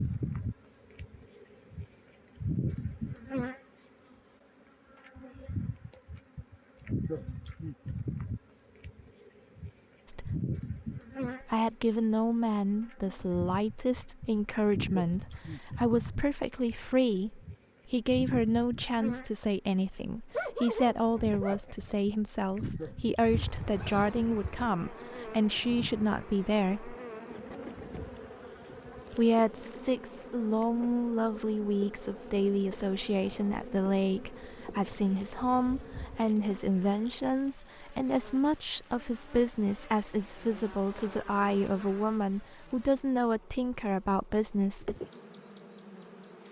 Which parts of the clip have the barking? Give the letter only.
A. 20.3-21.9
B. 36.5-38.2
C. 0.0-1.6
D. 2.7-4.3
A.